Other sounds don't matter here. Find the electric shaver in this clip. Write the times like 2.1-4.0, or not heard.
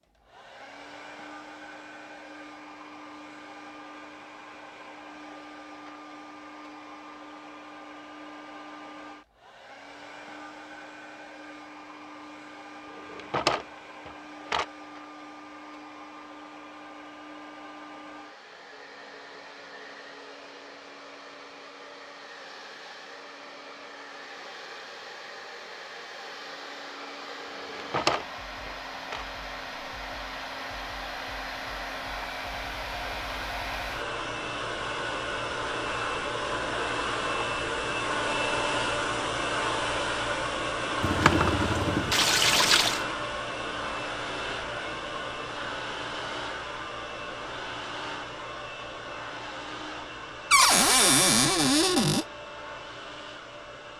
not heard.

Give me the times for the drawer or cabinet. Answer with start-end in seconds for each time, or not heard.
13.1-14.7, 27.7-29.2, 50.5-52.2.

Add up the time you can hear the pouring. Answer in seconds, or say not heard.
2 s.